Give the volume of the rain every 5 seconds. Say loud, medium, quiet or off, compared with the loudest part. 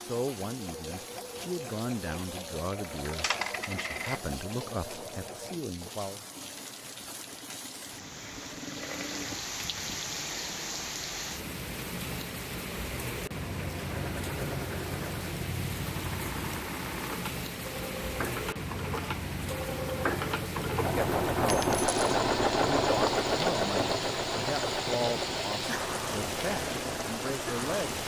medium, medium, loud, loud, loud, loud.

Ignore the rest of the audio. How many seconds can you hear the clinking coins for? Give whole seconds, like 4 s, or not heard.
2 s.